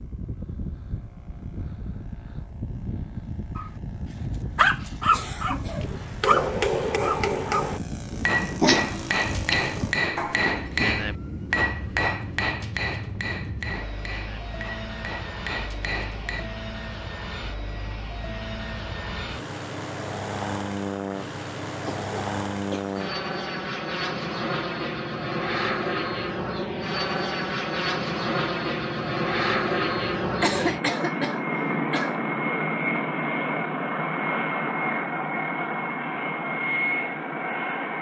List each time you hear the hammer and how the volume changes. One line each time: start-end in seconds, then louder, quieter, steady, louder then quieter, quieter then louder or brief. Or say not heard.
5.8-16.5 quieter.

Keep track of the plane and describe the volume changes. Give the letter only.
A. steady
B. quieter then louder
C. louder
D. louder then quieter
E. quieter
C.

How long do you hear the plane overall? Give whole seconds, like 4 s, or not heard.
38 s.